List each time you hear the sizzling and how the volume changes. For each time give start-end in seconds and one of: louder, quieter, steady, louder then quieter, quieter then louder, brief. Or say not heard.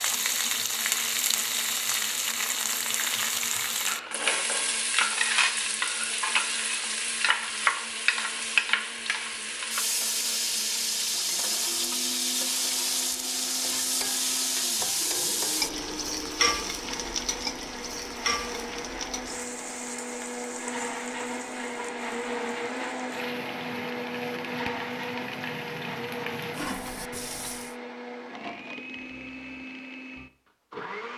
0.0-27.8 quieter.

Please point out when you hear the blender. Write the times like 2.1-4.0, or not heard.
0.0-31.1.